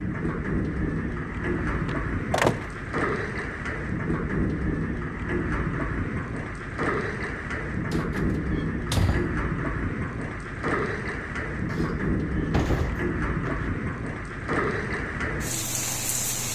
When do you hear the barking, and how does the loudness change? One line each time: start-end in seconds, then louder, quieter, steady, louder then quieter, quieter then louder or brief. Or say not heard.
not heard.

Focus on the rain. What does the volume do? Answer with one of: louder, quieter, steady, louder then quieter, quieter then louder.
steady.